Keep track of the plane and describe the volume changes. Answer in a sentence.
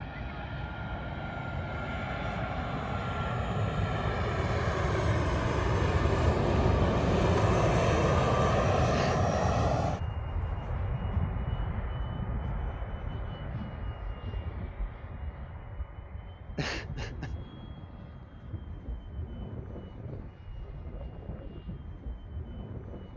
The volume of the plane goes up, then down.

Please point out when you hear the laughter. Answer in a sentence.
The laughter can be heard from 8.9 to 9.3 s and from 16.6 to 17.4 s.